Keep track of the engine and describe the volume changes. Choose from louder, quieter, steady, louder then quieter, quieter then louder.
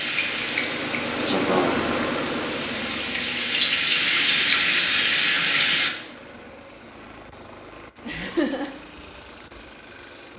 quieter.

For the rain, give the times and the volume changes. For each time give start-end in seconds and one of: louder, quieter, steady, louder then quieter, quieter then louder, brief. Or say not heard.
0.0-5.9 quieter then louder.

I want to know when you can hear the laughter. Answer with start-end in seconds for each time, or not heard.
1.3-1.8, 8.1-8.8.